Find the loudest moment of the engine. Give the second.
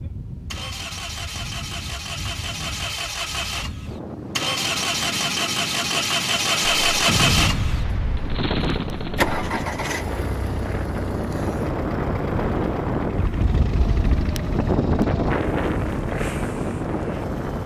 7 s.